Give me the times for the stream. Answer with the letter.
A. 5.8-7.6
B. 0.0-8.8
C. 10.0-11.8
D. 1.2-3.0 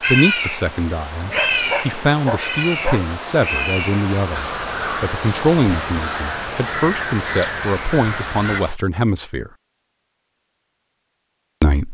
B.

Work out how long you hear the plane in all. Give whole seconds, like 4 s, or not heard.
not heard.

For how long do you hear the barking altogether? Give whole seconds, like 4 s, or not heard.
2 s.